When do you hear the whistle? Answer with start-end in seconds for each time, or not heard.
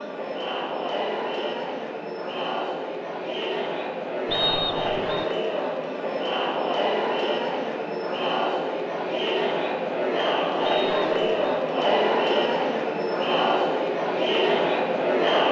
4.3-5.2, 10.7-11.6.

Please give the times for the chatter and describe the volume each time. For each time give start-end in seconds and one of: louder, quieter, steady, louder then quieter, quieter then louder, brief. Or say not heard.
0.0-15.4 louder.